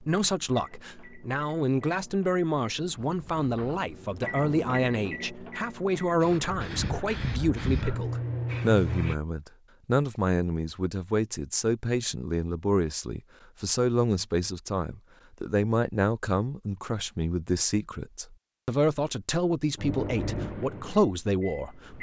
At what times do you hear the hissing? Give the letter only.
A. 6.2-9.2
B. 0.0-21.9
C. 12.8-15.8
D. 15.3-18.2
A.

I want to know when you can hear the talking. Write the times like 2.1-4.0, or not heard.
0.0-21.9.